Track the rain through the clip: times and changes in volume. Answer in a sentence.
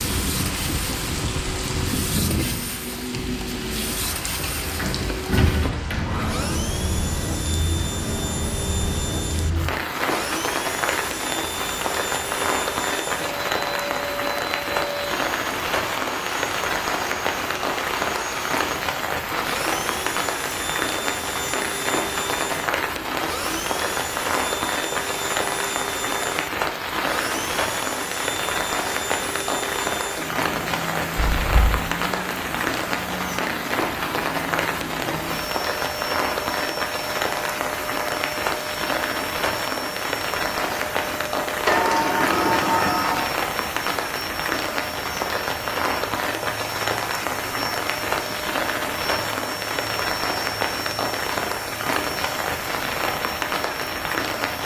You can hear the rain from 0.0 to 54.6 s, at a steady volume.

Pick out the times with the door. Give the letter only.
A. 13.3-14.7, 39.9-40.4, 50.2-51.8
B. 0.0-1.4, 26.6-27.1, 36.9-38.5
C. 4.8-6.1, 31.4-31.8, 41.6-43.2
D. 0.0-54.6
C.